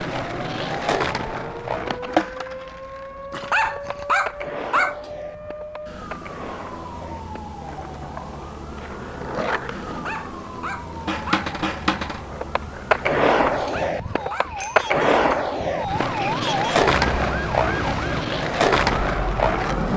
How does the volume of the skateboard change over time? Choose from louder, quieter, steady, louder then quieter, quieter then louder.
quieter then louder.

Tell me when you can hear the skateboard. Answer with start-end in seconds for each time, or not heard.
0.0-19.9.